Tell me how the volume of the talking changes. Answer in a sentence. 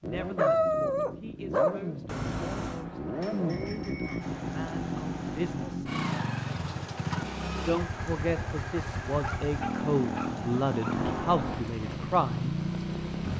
The loudness of the talking goes up.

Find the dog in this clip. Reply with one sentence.
You can hear the dog from 0.1 to 2.9 s and from 9.2 to 11.0 s.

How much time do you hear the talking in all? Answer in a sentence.
You can hear the talking for 11 seconds altogether.